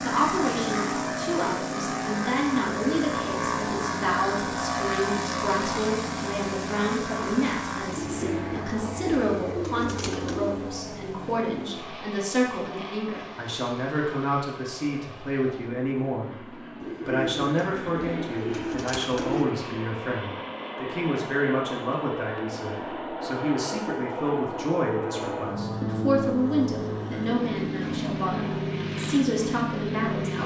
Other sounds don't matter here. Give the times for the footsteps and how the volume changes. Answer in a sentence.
You can't hear the footsteps here.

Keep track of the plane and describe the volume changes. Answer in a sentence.
The loudness of the plane goes down, then up.